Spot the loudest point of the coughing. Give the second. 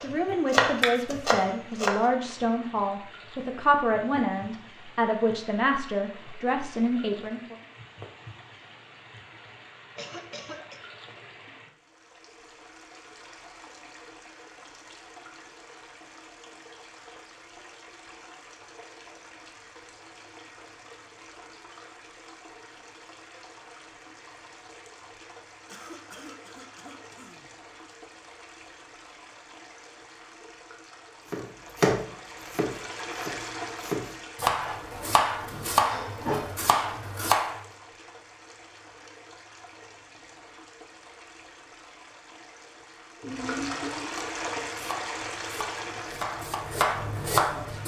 44 s.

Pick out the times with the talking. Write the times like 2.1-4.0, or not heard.
0.0-7.6.